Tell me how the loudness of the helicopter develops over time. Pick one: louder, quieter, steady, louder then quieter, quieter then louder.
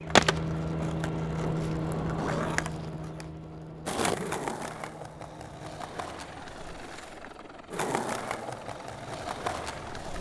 quieter.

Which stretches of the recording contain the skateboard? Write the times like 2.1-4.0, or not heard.
0.1-10.1.